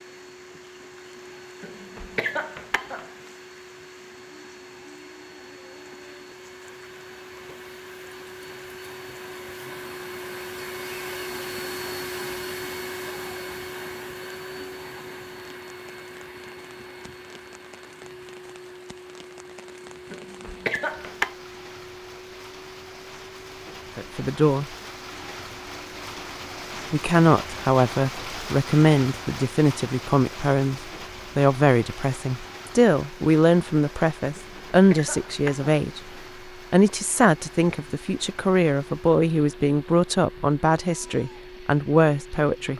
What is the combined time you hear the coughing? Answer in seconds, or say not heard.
5 s.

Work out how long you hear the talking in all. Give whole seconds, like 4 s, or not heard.
16 s.